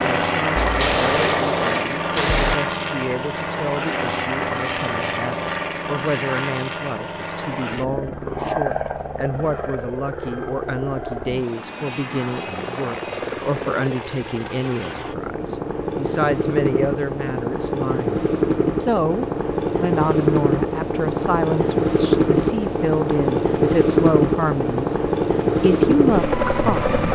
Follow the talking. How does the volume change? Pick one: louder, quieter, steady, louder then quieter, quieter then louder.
louder.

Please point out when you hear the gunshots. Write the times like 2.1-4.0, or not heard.
0.6-2.5.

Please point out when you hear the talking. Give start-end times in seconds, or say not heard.
0.0-27.0.